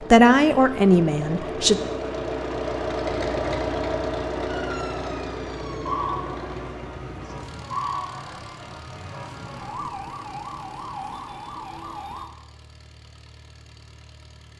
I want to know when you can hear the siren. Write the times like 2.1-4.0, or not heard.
4.5-12.3.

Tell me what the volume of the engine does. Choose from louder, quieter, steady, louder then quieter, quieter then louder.
quieter.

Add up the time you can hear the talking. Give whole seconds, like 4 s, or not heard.
2 s.